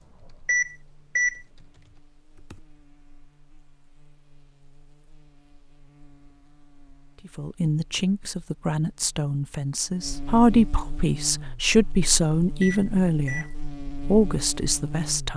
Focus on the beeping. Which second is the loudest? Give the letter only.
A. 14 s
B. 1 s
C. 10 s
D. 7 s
B.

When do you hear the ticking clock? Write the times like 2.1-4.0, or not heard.
not heard.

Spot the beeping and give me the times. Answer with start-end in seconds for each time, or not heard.
0.5-1.4, 12.6-13.6.